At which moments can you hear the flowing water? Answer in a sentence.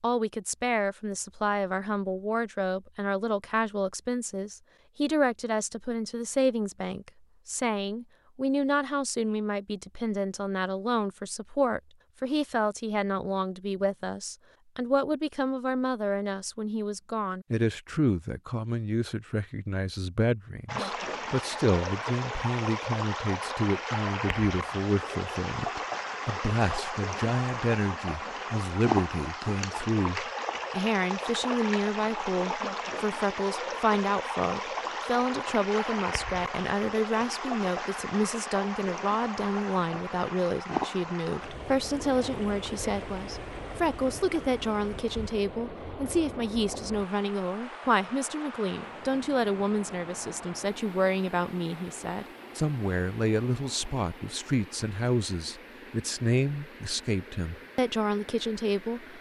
The flowing water can be heard from 20.6 to 59.1 s.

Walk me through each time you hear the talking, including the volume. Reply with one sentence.
The talking can be heard from 0.0 to 59.1 s, at a steady volume.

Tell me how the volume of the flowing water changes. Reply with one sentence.
The loudness of the flowing water goes down.